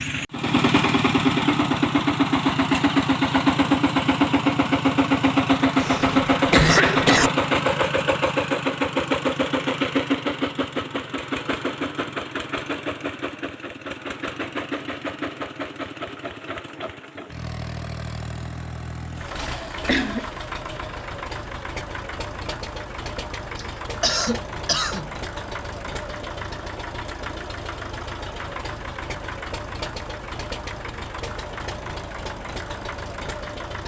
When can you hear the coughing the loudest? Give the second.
7 s.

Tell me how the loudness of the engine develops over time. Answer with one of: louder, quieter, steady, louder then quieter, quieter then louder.
quieter.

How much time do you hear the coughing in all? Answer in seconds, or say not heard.
4 s.